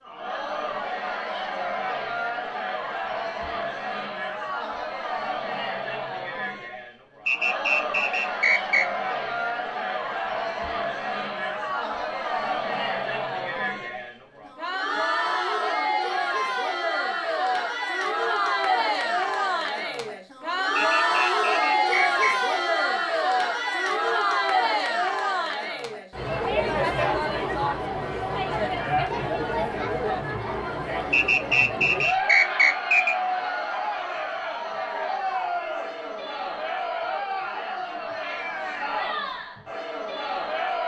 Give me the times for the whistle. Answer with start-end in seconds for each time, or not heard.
7.2-8.8, 20.8-22.4, 31.1-33.1.